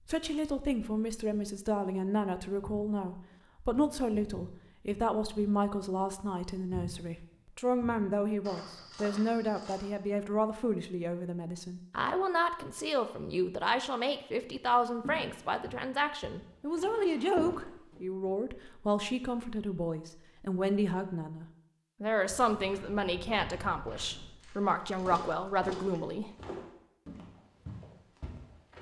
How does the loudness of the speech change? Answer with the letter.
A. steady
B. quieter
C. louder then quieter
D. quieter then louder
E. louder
A.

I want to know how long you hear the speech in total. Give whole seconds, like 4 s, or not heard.
26 s.